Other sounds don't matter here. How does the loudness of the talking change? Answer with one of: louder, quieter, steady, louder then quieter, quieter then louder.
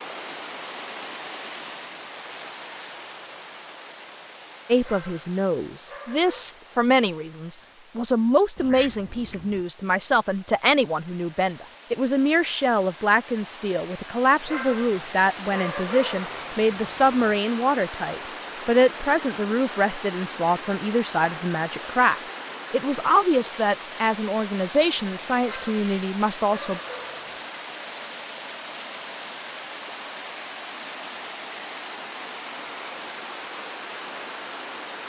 steady.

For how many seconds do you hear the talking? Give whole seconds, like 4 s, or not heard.
22 s.